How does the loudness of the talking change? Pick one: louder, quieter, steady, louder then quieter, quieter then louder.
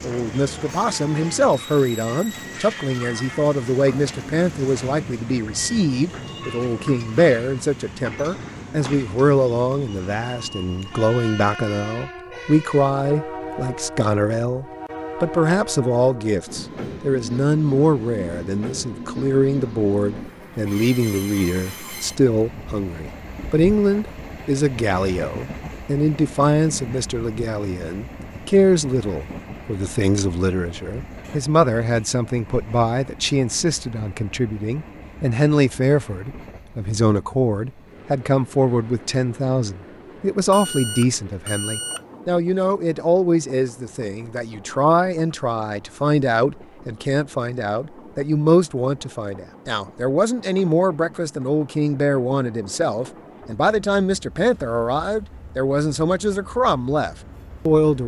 steady.